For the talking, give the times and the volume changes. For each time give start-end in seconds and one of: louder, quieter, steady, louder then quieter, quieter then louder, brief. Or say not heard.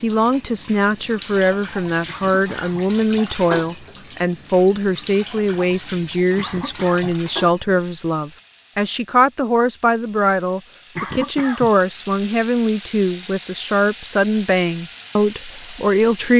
0.0-16.3 steady.